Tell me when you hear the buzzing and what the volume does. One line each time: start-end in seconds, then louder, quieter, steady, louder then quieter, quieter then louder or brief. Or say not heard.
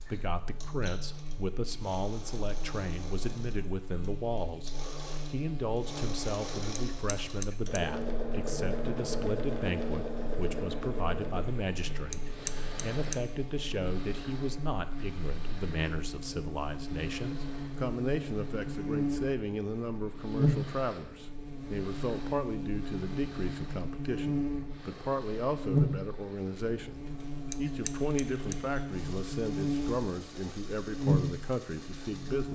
0.0-32.5 louder.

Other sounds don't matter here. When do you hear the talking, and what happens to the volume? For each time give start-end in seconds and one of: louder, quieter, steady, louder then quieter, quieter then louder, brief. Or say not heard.
0.1-32.5 steady.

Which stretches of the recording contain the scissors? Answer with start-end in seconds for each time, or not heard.
6.8-7.8, 12.1-13.2, 27.5-28.6.